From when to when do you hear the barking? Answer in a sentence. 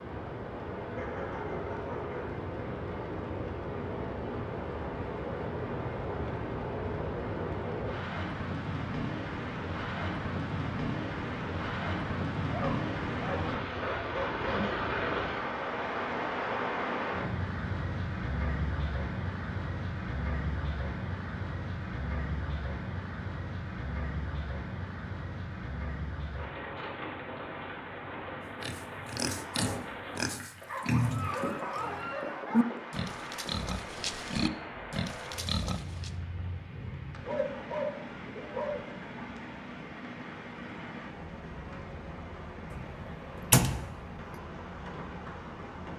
The barking can be heard from 0.9 to 2.2 s, from 12.5 to 14.6 s, from 30.6 to 32.7 s and from 37.1 to 38.9 s.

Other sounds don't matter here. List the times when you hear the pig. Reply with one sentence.
The pig can be heard from 28.6 to 36.1 s.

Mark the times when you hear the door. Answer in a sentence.
You can hear the door from 42.7 to 43.9 s.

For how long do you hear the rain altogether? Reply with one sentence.
The rain can be heard for 46 seconds in total.